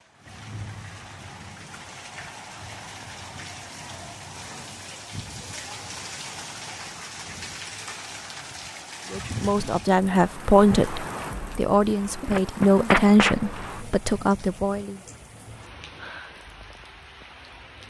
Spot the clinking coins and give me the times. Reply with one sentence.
You can hear the clinking coins from 12.2 to 13.8 s.